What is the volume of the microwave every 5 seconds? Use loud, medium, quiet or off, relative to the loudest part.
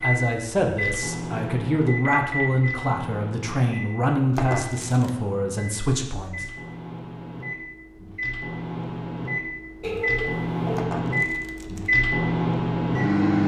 medium, medium, loud.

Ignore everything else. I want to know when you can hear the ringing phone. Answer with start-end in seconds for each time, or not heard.
2.0-2.6, 9.8-10.8.